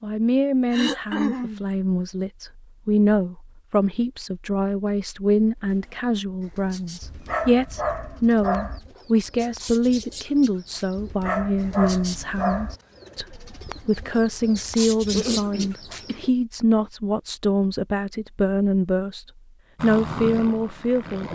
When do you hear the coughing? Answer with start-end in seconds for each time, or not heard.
0.7-1.6, 15.1-16.2.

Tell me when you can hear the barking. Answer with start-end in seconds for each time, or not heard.
7.0-8.8, 10.9-12.8.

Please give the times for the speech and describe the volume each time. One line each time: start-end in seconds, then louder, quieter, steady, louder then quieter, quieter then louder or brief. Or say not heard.
0.0-21.3 steady.